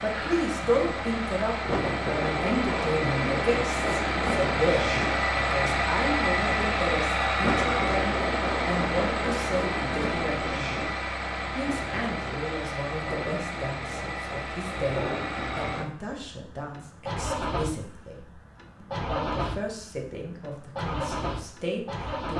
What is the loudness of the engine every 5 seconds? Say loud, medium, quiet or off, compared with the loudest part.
loud, loud, medium, medium, medium.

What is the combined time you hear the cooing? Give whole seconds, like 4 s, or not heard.
not heard.